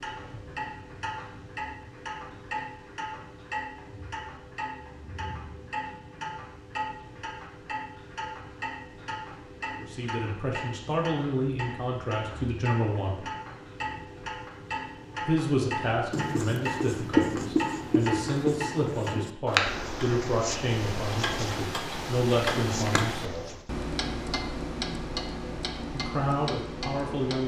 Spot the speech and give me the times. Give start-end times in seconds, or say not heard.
9.8-13.2, 15.2-23.4, 25.9-27.4.